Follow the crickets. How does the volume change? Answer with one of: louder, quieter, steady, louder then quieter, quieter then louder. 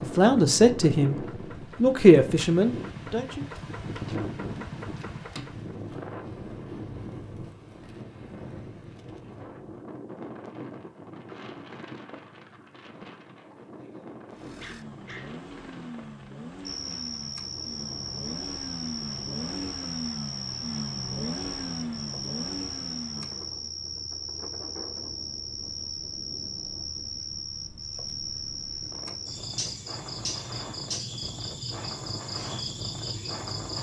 steady.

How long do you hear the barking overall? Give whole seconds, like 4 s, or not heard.
2 s.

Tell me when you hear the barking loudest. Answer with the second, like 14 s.
15 s.